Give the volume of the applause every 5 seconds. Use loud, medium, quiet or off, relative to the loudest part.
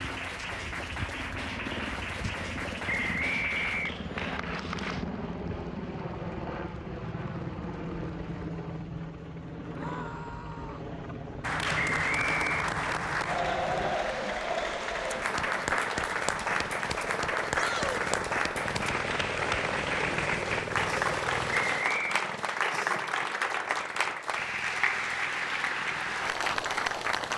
medium, quiet, loud, loud, loud, loud.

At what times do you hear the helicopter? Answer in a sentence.
The helicopter can be heard from 0.0 to 27.3 s.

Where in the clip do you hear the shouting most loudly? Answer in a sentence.
The loudest moment of the shouting is at 18 seconds.